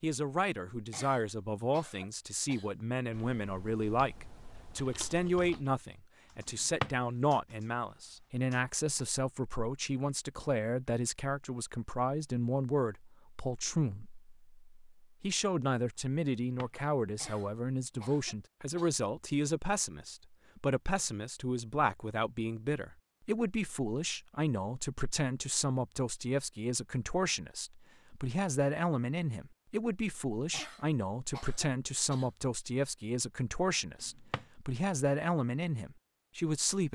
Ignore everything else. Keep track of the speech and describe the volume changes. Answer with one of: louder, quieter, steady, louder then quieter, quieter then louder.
steady.